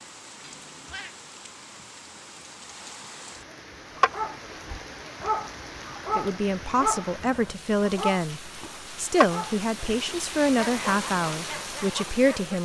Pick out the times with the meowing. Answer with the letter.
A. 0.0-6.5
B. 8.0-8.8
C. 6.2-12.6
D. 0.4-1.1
D.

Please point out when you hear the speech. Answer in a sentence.
The speech can be heard from 6.2 to 12.6 s.